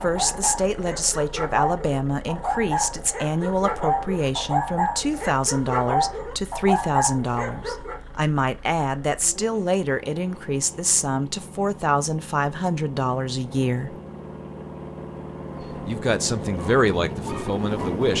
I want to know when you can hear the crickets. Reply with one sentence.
You can't hear the crickets here.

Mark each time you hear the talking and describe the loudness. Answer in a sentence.
The talking can be heard from 0.0 to 13.9 s, at a steady volume; and briefly from 15.8 to 18.1 s.